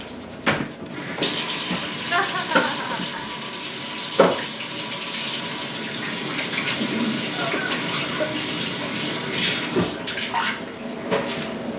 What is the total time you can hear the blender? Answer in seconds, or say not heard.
not heard.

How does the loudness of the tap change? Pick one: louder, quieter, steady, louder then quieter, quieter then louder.
steady.